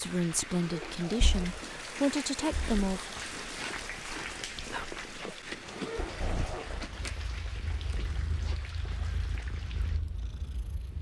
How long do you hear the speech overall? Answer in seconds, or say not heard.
3 s.